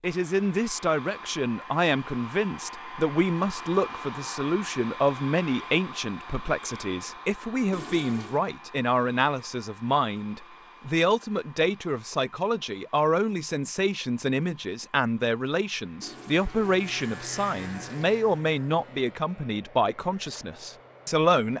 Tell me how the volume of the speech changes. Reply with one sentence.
The volume of the speech stays about the same.